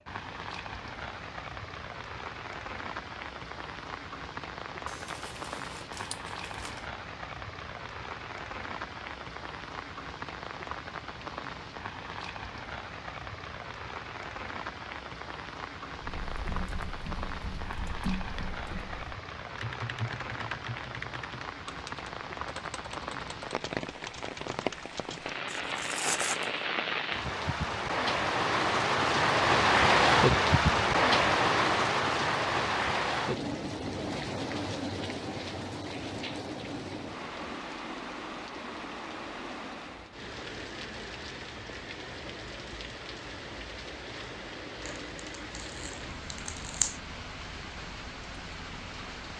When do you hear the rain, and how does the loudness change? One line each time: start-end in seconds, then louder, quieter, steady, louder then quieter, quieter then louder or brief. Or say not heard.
0.0-49.3 louder then quieter.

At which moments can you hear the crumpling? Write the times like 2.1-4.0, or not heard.
4.8-6.8, 25.4-26.5, 45.5-47.0.